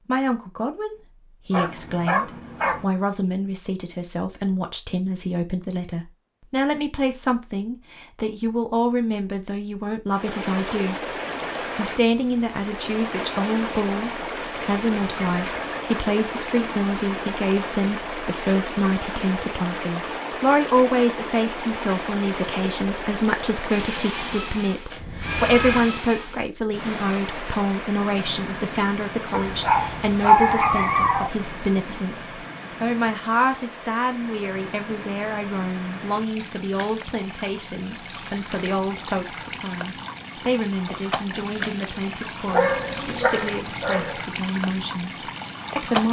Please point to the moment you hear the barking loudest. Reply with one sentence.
The volume of the barking peaks at 30 seconds.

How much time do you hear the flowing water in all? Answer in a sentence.
The flowing water can be heard for 36 seconds in total.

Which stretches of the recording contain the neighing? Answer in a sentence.
The neighing can be heard from 24.9 to 25.9 s.